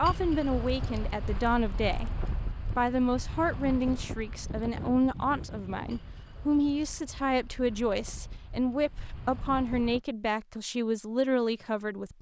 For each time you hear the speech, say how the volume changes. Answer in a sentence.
The speech can be heard briefly from 0.0 to 2.1 s; and from 2.8 to 12.1 s, at a steady volume.